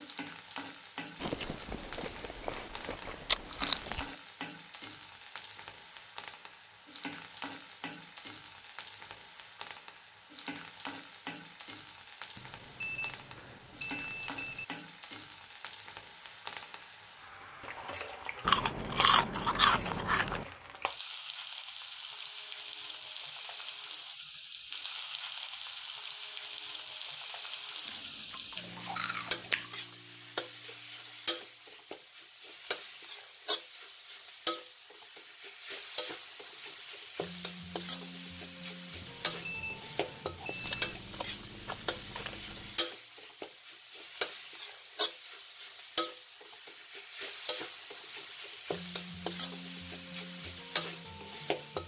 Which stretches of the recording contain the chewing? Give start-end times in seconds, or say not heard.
1.2-4.0, 18.4-20.4, 27.9-29.8, 40.6-42.7.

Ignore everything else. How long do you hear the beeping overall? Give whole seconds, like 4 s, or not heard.
4 s.